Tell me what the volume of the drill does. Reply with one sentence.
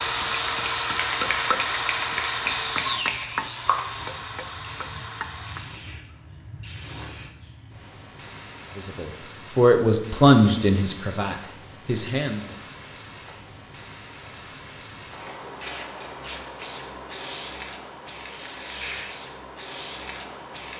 The loudness of the drill goes down.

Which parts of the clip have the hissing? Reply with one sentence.
You can hear the hissing from 0.0 to 20.7 s.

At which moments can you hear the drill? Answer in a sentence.
You can hear the drill from 0.0 to 5.8 s.